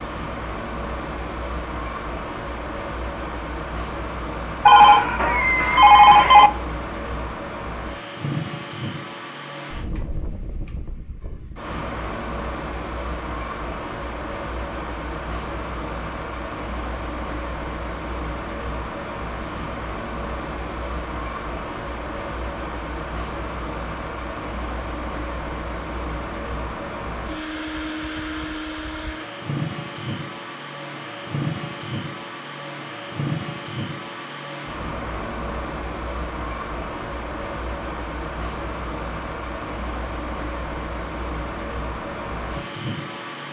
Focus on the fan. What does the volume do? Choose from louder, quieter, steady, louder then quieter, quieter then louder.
steady.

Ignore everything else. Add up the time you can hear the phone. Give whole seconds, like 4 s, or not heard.
2 s.